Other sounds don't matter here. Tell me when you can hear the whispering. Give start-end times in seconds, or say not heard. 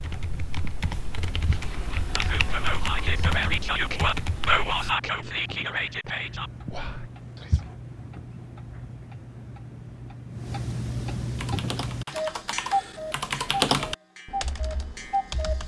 1.9-7.7.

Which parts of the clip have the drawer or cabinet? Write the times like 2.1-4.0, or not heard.
not heard.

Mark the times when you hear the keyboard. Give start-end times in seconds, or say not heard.
0.0-5.0, 11.3-15.6.